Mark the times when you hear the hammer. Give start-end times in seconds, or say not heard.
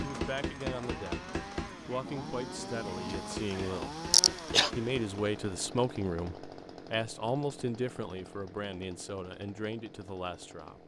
0.0-5.3.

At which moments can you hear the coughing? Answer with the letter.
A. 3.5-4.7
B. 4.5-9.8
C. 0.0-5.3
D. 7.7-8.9
A.